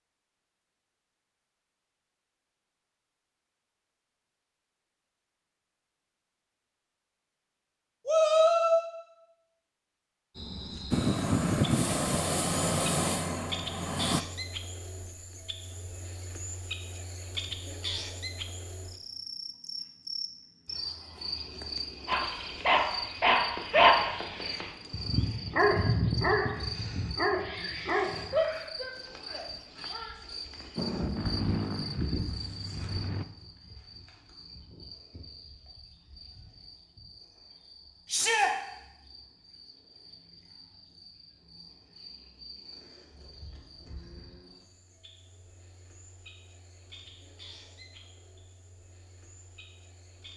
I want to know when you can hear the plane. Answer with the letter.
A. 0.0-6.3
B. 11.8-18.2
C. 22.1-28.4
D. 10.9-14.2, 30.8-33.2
D.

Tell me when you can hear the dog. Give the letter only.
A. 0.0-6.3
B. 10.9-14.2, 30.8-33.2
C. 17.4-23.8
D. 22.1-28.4
D.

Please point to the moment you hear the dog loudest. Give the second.
24 s.